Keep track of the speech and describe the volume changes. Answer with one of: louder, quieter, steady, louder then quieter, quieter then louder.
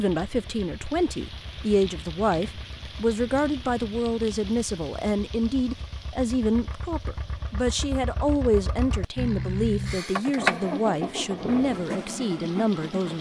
steady.